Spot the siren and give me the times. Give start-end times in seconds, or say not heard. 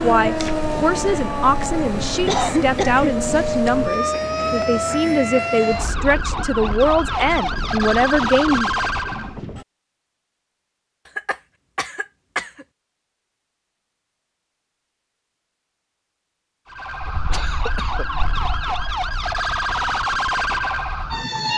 0.0-9.4, 16.6-21.5.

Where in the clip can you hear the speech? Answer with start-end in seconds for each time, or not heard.
0.0-8.8.